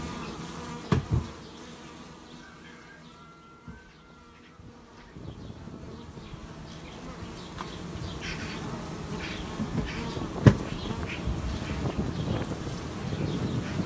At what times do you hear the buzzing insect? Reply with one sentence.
The buzzing insect can be heard from 0.0 to 13.8 s.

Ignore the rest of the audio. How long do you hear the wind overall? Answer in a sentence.
The wind can be heard for 9 seconds in total.